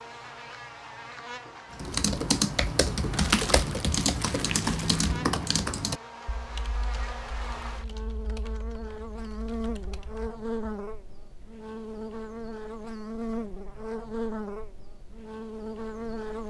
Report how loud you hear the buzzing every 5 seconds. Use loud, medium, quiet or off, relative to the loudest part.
medium, loud, loud, loud.